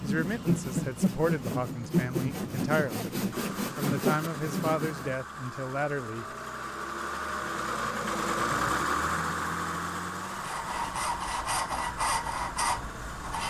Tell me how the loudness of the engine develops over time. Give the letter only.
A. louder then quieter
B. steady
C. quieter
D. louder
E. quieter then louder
A.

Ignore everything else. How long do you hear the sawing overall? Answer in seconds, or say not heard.
8 s.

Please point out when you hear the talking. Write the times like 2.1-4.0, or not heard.
0.0-3.1, 3.8-6.2.